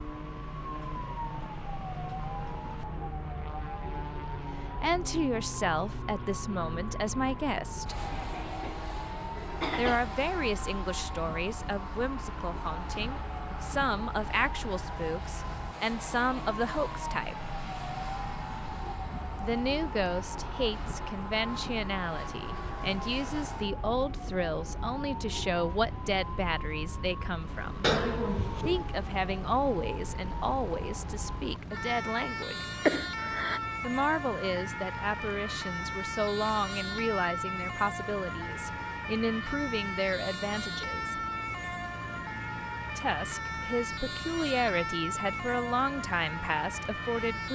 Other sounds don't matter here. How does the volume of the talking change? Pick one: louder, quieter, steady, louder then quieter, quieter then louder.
steady.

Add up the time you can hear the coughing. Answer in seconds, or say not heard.
4 s.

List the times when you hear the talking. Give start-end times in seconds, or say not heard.
4.8-8.0, 9.8-17.5, 19.4-27.9, 28.6-32.5, 33.8-41.1, 43.0-47.5.